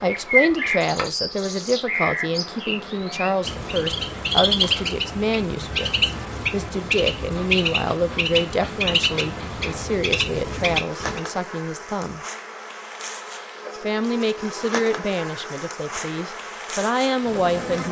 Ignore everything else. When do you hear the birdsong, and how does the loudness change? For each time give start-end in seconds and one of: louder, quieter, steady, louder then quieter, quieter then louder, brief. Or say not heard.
0.1-11.2 steady.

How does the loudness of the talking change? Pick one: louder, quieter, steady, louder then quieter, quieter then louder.
steady.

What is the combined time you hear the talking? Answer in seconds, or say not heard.
16 s.